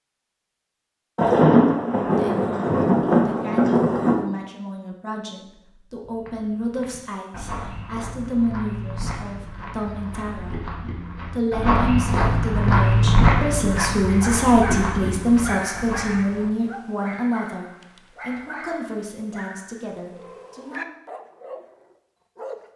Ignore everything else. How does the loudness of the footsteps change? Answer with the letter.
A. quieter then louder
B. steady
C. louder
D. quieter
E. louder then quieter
E.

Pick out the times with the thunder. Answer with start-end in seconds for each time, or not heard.
1.1-4.2.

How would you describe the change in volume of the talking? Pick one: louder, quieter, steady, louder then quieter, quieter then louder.
louder then quieter.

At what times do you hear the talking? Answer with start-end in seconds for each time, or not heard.
2.0-10.7, 11.3-20.9.